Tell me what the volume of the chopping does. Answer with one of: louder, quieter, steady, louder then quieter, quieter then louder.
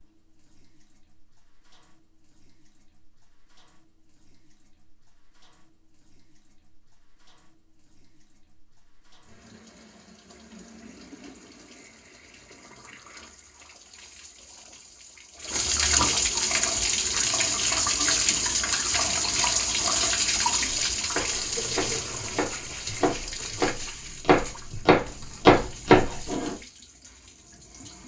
louder.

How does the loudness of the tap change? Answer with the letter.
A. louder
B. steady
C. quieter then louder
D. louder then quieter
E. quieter
D.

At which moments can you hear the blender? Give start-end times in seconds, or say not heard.
not heard.